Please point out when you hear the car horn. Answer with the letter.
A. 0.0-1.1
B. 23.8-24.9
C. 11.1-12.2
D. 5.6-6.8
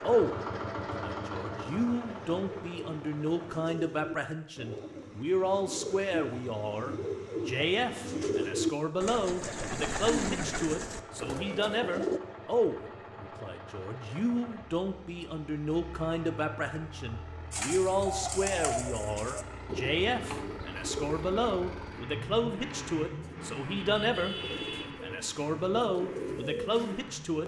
B.